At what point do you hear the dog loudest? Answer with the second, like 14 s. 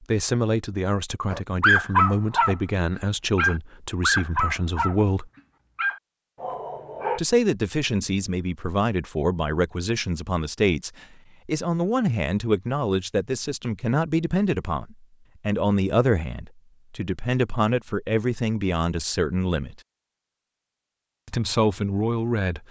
2 s.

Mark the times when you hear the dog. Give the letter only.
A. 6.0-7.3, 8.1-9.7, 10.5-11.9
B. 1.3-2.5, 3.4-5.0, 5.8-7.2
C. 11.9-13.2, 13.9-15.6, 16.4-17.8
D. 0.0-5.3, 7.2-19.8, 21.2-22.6
B.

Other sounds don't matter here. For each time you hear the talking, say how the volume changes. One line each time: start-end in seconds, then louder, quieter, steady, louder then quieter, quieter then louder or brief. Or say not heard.
0.0-5.3 steady
7.2-19.8 steady
21.2-22.6 brief.